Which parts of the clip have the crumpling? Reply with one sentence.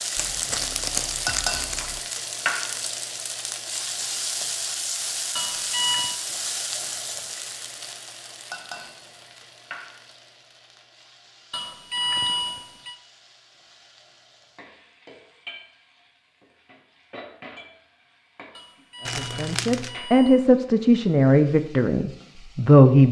The crumpling can be heard from 0.1 to 2.0 s and from 19.1 to 20.0 s.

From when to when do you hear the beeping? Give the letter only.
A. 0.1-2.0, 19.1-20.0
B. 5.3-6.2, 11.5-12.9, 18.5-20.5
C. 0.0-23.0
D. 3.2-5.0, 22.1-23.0
B.